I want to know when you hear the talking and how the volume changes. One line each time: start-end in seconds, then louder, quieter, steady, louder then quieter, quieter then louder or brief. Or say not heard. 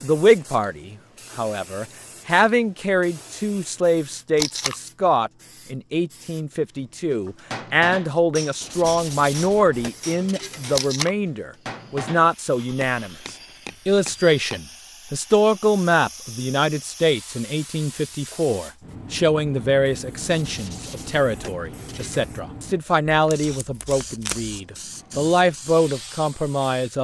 0.0-26.9 steady.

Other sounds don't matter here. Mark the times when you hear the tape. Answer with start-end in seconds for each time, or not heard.
4.3-4.8, 10.7-11.1, 23.1-24.6.